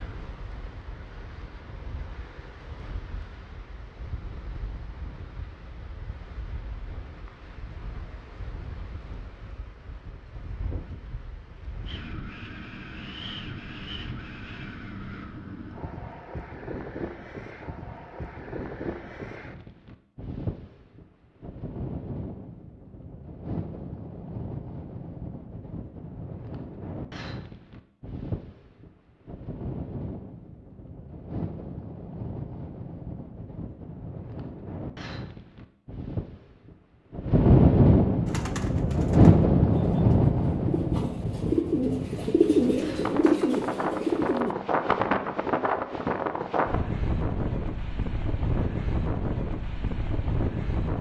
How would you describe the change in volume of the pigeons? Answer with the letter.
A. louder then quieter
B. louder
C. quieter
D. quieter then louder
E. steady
B.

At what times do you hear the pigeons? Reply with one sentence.
The pigeons can be heard from 38.2 to 44.5 s.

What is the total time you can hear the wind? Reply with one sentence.
You can hear the wind for 51 seconds altogether.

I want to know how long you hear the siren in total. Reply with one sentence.
You can't hear the siren here.